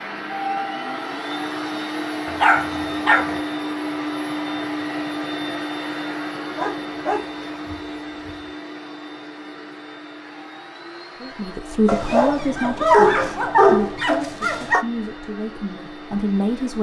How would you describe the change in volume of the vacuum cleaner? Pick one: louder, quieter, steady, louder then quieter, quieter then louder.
quieter.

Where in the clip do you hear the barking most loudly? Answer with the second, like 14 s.
13 s.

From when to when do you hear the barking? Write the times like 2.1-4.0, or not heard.
2.2-3.4, 6.5-8.4, 11.8-14.8.